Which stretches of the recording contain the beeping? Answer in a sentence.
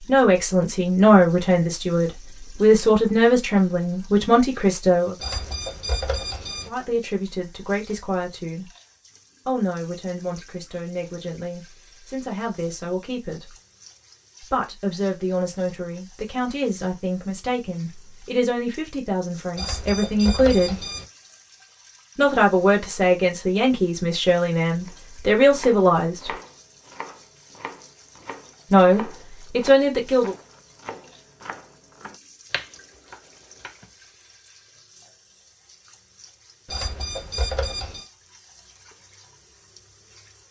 You can hear the beeping from 5.2 to 6.7 s, from 19.6 to 21.1 s and from 36.6 to 38.0 s.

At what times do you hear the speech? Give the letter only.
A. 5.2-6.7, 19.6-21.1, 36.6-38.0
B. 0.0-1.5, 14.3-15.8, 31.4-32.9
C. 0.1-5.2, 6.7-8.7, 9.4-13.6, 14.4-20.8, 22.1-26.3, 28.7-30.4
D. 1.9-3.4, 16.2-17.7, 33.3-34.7
C.